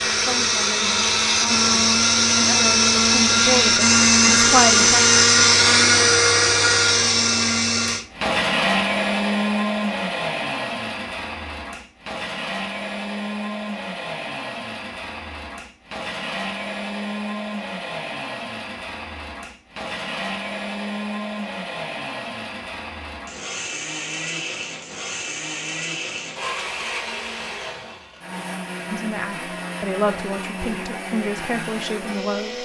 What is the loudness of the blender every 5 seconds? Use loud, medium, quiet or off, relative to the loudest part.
loud, loud, quiet, quiet, quiet, quiet, quiet.